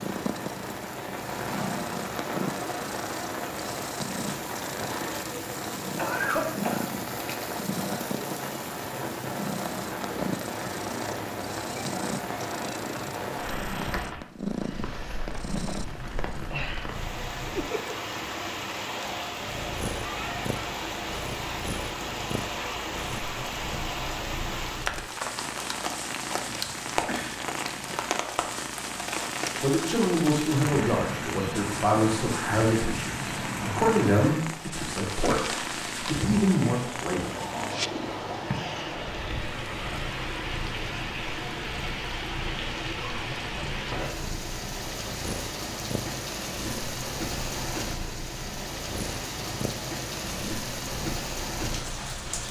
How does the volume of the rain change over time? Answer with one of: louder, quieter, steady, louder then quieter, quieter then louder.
steady.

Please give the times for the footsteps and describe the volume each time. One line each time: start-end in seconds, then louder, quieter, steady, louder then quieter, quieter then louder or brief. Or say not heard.
not heard.